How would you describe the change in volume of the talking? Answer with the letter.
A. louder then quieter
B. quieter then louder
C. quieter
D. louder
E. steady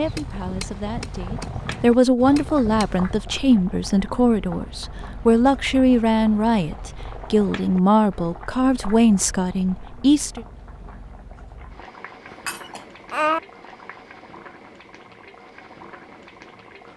E.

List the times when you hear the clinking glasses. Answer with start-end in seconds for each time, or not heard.
12.3-13.4.